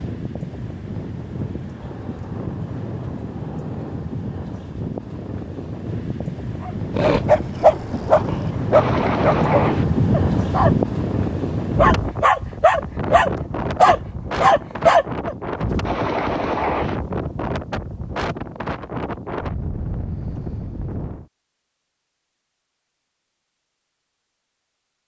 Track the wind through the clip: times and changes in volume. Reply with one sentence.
You can hear the wind from 0.0 to 21.2 s, getting louder then quieter.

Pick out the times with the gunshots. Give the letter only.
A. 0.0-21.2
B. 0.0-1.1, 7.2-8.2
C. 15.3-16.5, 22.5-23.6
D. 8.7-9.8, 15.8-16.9
D.